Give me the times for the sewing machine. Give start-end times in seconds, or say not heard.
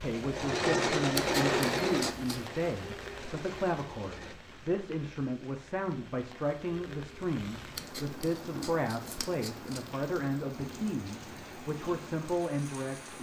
0.0-4.3.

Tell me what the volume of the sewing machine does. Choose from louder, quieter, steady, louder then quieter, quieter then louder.
quieter.